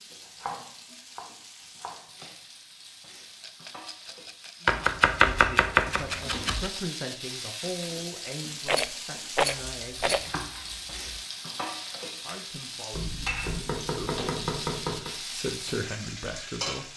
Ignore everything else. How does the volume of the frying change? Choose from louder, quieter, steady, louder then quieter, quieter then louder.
louder.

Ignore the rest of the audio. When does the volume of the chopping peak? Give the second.
5 s.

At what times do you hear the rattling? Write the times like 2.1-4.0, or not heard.
3.4-4.8, 8.7-10.3.